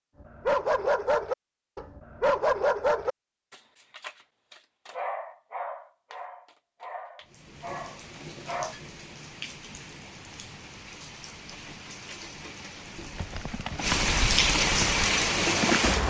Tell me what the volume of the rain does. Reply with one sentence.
The loudness of the rain goes up.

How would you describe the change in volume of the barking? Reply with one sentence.
The volume of the barking goes down.